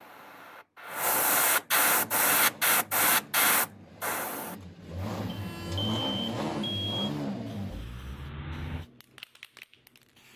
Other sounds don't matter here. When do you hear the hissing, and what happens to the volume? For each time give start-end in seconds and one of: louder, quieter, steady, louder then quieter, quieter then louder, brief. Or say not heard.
0.0-10.3 quieter.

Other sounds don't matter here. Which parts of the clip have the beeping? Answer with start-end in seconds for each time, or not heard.
5.2-7.0.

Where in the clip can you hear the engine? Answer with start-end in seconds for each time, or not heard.
1.9-8.8.